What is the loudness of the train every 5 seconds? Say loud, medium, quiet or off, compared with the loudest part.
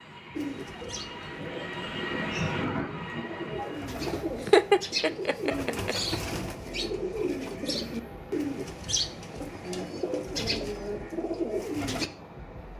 loud, medium, medium.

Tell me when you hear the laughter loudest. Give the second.
5 s.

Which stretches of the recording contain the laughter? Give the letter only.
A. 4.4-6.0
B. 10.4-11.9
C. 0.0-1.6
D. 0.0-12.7
A.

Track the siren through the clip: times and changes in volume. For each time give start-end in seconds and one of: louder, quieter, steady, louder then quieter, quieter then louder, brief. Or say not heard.
not heard.